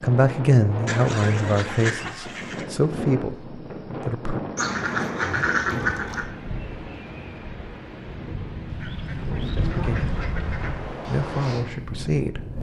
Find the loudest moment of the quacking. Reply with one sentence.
The loudest moment of the quacking is at 6 seconds.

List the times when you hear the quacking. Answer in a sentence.
The quacking can be heard from 0.8 to 2.6 s, from 4.5 to 6.2 s and from 8.7 to 10.9 s.